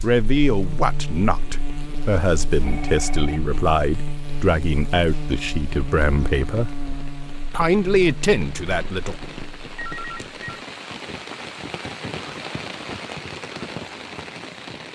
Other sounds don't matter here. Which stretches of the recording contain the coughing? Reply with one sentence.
The coughing can't be heard in this clip.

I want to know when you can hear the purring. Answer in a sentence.
The purring can't be heard in this clip.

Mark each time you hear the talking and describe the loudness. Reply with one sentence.
The talking can be heard from 0.0 to 6.7 s, at a steady volume; and briefly from 7.5 to 9.2 s.